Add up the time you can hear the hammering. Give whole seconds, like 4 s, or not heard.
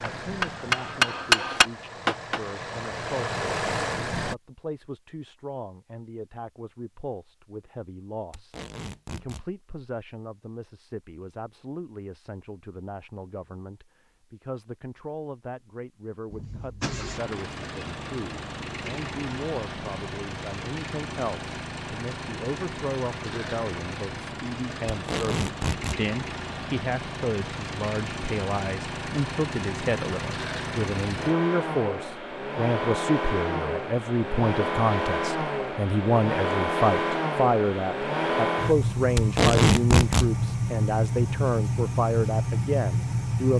2 s.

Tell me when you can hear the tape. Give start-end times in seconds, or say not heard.
8.3-9.4, 24.9-26.0, 39.1-40.3.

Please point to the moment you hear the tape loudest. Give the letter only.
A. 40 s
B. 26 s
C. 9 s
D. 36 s
A.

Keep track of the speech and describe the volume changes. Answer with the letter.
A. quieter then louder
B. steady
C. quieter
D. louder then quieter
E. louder
E.